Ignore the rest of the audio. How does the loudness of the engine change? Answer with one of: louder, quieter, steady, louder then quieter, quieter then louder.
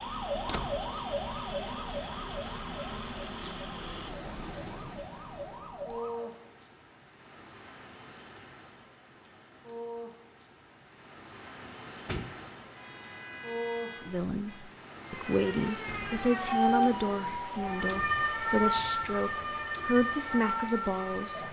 steady.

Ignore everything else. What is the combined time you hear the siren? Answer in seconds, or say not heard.
13 s.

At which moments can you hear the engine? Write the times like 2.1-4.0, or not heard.
0.0-4.1.